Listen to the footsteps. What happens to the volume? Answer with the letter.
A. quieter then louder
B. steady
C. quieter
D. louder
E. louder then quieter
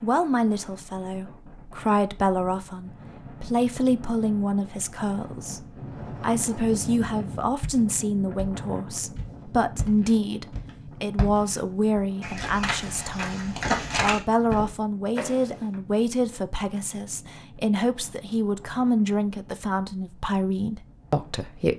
D.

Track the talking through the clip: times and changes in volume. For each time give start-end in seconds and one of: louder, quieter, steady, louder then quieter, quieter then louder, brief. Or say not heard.
0.0-21.7 steady.